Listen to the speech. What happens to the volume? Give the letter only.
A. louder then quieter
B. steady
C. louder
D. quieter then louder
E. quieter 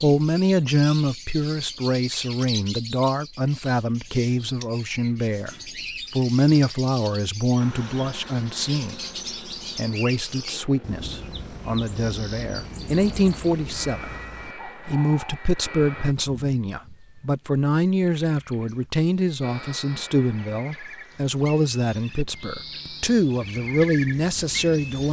B.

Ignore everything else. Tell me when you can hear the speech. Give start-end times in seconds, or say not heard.
0.0-9.0, 9.8-25.0.